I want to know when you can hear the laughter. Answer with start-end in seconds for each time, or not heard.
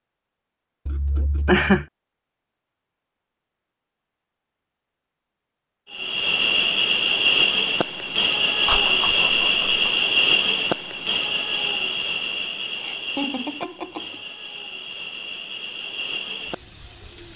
0.8-1.9, 8.7-9.8, 12.8-14.2.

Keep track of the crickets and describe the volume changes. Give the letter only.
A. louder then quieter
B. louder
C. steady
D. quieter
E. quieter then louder
D.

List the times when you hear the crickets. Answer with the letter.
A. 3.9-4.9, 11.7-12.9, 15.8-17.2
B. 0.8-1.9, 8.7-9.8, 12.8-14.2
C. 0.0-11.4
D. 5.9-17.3
D.